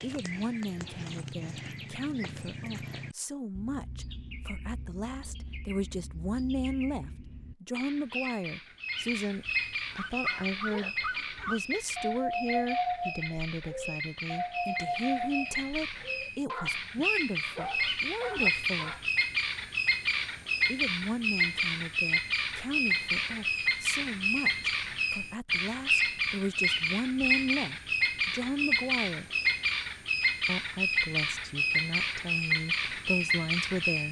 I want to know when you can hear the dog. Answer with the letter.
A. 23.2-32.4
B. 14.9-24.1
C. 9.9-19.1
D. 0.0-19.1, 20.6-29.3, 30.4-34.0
C.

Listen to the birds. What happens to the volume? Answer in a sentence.
The volume of the birds goes up.